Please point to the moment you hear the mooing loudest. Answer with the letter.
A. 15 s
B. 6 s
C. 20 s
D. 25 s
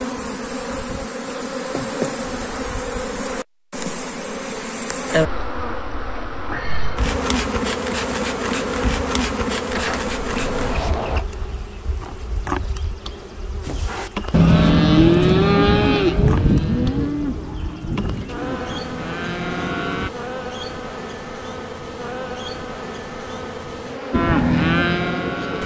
A.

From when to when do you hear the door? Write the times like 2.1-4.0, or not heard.
9.7-11.2.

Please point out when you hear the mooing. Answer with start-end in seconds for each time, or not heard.
13.7-20.1, 24.1-25.6.